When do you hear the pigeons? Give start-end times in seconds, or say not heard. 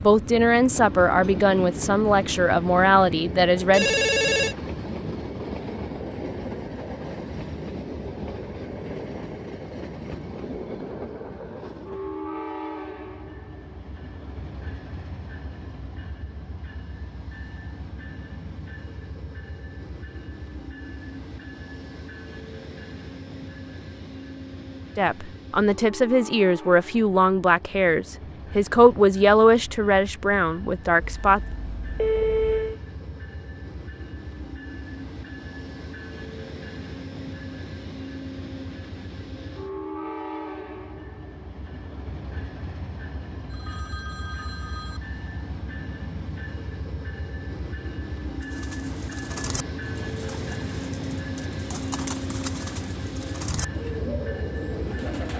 48.4-55.3.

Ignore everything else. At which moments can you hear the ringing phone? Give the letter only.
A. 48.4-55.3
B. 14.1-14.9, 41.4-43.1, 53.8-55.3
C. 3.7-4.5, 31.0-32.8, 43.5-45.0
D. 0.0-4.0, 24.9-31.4
C.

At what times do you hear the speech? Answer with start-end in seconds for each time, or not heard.
0.0-4.0, 24.9-31.4.